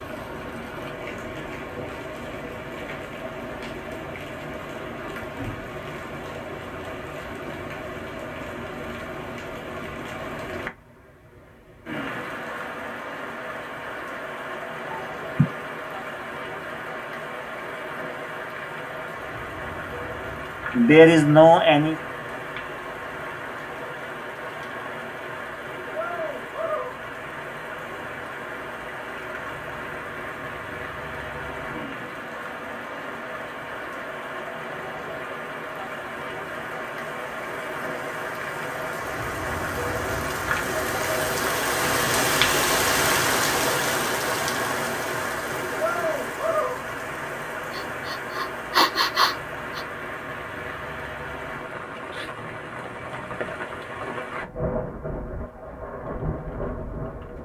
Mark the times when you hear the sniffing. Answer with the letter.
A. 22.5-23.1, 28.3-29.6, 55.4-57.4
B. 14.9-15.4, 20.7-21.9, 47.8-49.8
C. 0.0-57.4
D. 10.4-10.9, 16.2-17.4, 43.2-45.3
B.